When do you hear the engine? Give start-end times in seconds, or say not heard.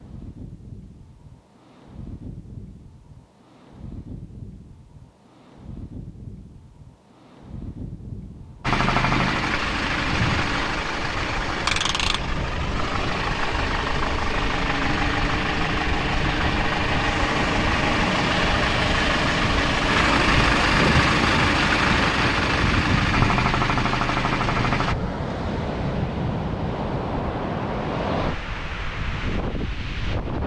8.6-24.9.